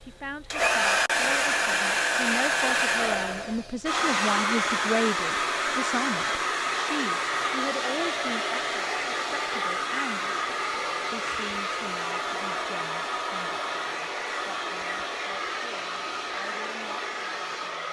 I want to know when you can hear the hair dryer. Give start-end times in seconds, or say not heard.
0.0-17.8.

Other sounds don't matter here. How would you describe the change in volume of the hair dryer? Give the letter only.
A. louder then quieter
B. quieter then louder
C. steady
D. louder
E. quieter
E.